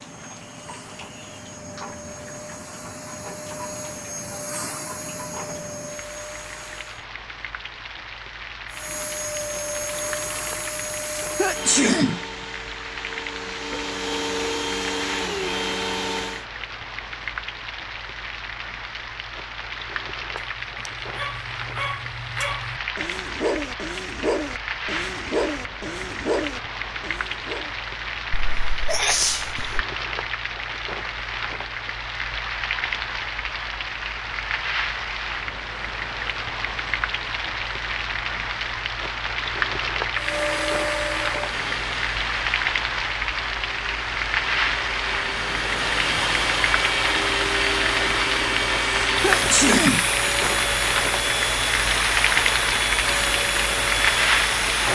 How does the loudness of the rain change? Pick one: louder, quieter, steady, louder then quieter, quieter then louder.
louder.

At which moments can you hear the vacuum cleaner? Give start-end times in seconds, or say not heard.
0.0-7.0, 8.7-16.4, 40.1-54.9.